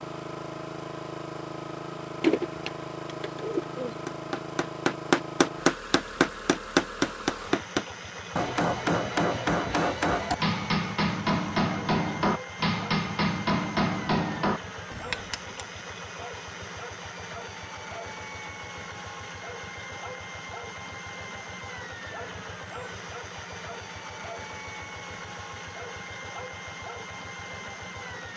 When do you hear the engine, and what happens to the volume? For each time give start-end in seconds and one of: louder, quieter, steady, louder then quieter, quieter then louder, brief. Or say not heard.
0.0-28.3 steady.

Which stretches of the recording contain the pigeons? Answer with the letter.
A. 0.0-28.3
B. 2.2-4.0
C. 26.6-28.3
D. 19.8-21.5
B.